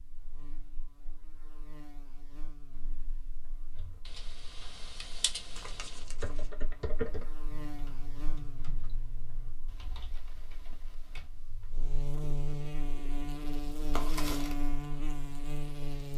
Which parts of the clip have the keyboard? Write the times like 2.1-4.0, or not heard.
3.7-11.3.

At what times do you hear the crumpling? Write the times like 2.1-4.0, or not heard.
5.5-6.5, 13.9-14.6.